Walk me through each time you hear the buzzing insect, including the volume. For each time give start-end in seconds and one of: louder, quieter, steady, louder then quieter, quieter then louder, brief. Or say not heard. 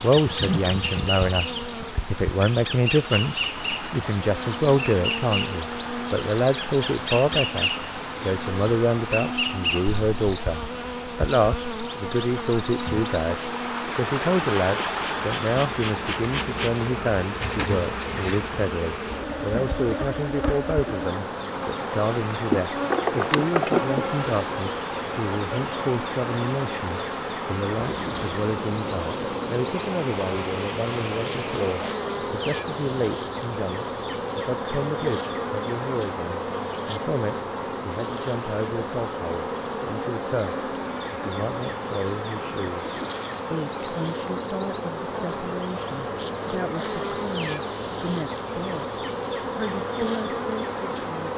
0.0-51.3 steady.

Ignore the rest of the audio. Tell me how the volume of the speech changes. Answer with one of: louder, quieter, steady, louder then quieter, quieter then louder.
quieter.